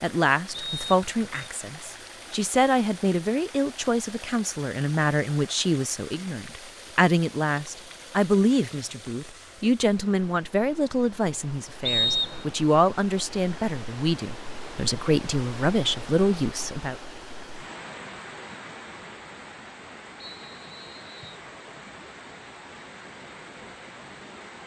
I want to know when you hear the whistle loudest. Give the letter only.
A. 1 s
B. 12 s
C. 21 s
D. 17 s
B.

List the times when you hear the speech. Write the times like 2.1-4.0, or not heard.
0.0-16.9.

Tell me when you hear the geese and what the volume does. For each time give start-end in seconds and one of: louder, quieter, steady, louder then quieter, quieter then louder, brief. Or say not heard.
not heard.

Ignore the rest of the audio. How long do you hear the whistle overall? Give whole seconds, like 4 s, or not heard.
3 s.